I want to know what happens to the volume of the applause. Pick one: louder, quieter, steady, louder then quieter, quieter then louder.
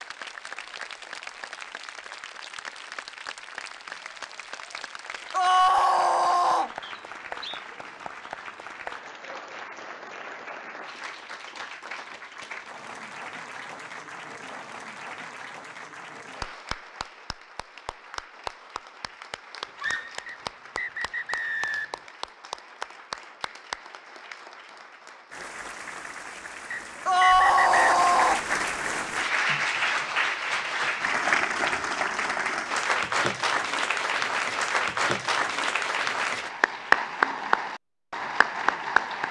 louder.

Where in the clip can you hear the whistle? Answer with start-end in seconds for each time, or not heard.
6.8-7.7, 20.2-22.1, 26.7-27.9.